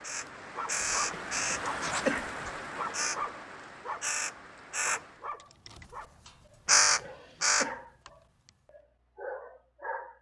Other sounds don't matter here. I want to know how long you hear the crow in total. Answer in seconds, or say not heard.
7 s.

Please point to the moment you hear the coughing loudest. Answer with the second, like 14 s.
2 s.